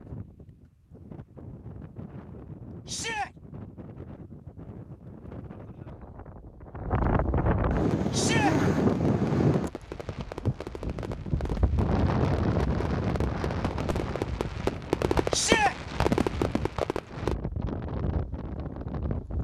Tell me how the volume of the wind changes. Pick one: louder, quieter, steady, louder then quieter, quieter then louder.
louder then quieter.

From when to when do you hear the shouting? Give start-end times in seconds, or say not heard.
2.9-3.3, 8.1-8.6, 15.3-15.8.